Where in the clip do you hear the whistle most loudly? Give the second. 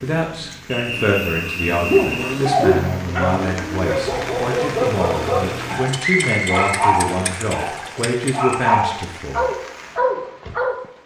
6 s.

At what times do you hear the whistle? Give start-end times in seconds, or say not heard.
0.7-2.4, 6.0-6.6.